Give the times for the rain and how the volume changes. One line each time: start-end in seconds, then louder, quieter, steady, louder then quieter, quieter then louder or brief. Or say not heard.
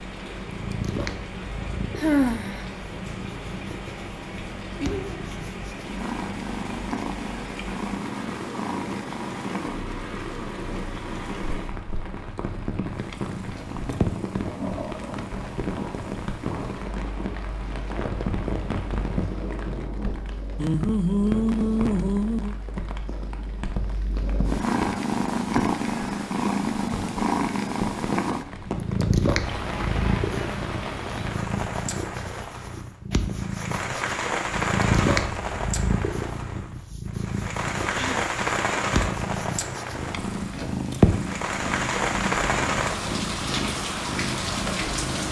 0.0-45.2 louder.